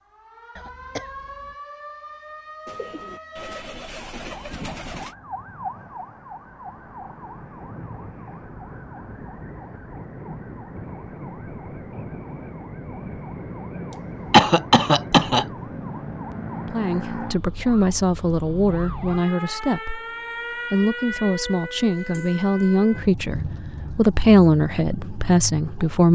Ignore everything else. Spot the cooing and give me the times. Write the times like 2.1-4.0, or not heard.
2.6-5.2.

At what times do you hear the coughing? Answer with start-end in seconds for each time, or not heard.
0.6-1.6, 13.9-15.4.